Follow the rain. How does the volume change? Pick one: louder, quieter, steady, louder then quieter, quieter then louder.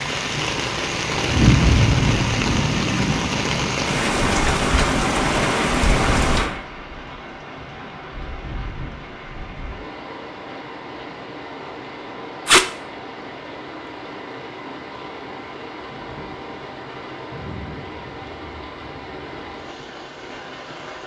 quieter.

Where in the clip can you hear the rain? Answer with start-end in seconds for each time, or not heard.
0.0-21.0.